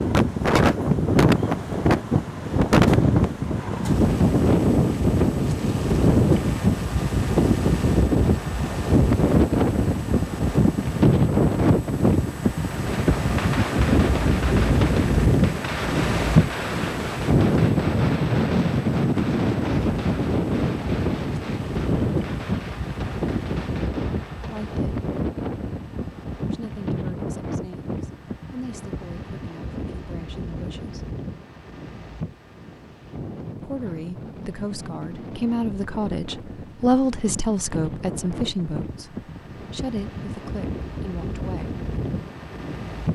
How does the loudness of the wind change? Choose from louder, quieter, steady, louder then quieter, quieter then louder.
quieter.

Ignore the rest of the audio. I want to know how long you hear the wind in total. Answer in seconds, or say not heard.
43 s.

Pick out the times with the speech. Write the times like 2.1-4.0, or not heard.
24.4-25.0, 26.4-31.1, 33.6-41.8.